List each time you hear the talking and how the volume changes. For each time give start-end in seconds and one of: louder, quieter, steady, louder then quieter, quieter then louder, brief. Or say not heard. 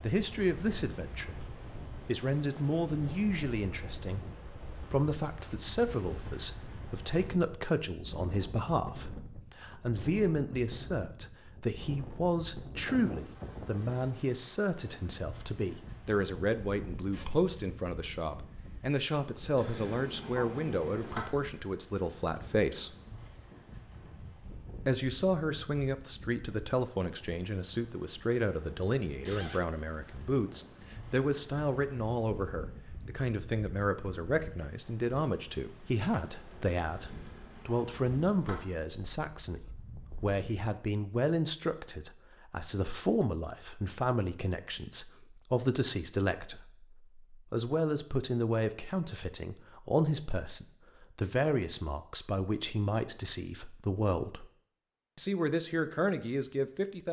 0.0-22.9 steady
24.9-54.5 steady
55.1-57.0 brief.